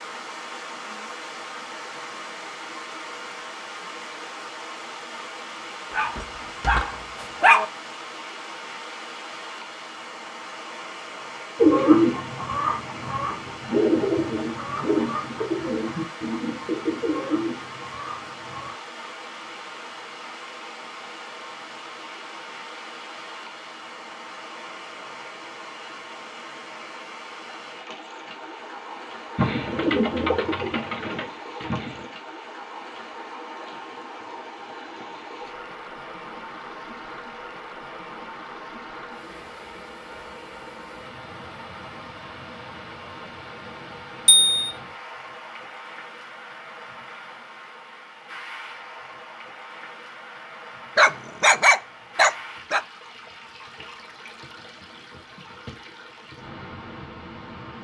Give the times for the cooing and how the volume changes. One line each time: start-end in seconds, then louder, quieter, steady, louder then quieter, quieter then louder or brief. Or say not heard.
11.6-18.8 quieter
29.4-32.1 brief.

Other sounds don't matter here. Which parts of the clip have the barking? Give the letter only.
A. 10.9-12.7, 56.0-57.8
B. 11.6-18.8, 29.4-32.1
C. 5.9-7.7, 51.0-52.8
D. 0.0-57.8
C.